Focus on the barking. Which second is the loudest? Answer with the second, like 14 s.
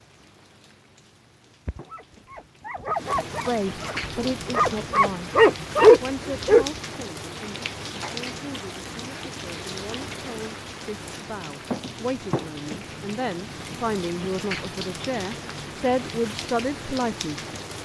6 s.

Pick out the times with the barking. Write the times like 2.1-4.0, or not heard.
1.6-6.7.